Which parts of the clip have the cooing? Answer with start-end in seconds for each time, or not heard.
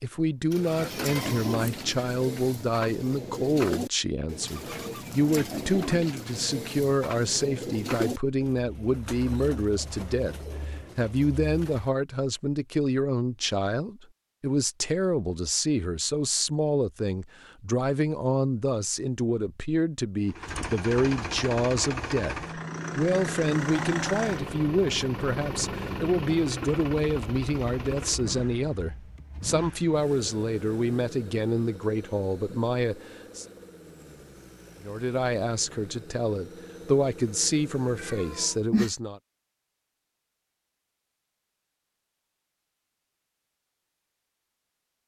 0.5-11.9.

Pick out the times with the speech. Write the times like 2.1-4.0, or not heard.
0.0-33.5, 34.8-39.2.